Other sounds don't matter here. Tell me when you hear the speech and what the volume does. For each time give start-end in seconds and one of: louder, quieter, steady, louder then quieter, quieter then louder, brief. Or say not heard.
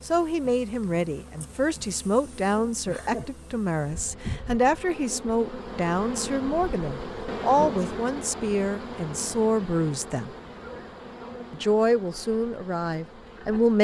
0.1-10.3 steady
11.5-13.7 brief.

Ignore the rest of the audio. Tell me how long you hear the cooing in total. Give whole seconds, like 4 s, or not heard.
not heard.